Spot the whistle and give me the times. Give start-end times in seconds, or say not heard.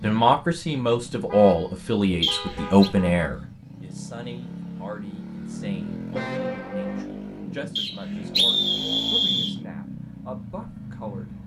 2.2-2.9, 7.8-9.6.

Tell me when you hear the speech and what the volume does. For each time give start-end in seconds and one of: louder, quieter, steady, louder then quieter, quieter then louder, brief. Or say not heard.
0.0-11.4 quieter.